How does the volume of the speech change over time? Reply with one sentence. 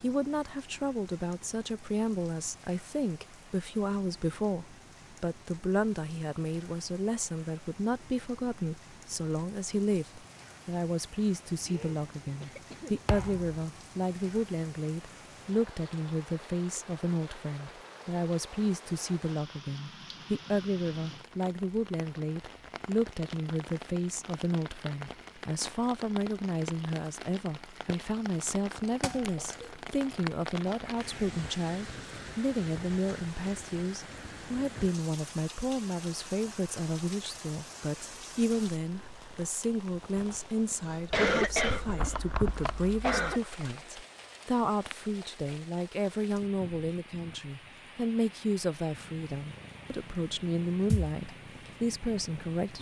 The loudness of the speech stays about the same.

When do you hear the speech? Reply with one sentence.
You can hear the speech from 0.0 to 52.7 s.